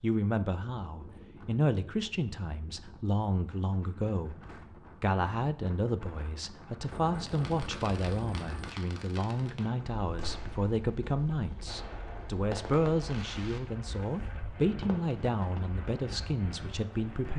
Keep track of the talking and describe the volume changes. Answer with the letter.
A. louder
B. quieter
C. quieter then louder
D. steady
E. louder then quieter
D.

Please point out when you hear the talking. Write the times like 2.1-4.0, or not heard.
0.0-4.4, 5.0-17.3.